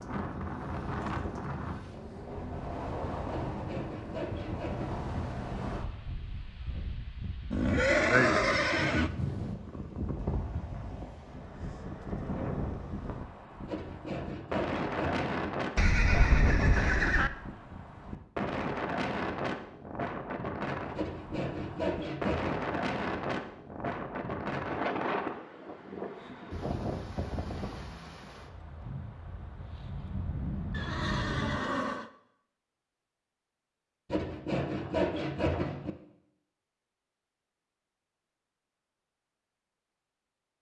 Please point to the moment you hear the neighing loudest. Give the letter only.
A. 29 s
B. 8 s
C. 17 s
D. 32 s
B.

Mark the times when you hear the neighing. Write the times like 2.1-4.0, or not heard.
7.5-9.1, 15.8-17.3, 30.7-32.1.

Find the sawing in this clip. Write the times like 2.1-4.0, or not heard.
3.3-5.0, 13.7-15.5, 20.9-22.8, 34.1-35.9.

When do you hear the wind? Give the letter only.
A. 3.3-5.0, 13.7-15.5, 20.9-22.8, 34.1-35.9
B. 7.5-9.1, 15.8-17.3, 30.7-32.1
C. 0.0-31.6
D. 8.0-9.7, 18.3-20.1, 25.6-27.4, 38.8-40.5
C.